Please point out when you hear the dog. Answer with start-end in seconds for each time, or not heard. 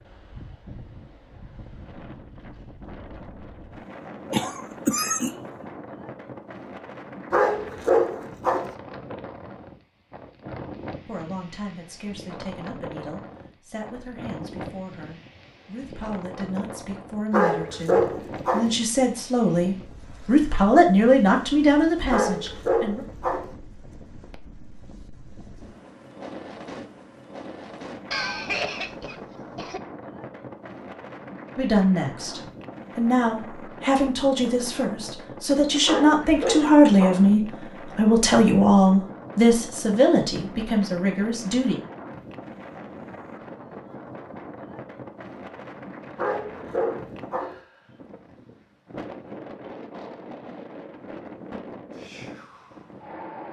7.3-8.8, 17.3-18.8, 22.1-23.5, 35.9-37.3, 46.1-47.6.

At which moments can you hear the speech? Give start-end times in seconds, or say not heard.
11.1-23.1, 31.6-41.8.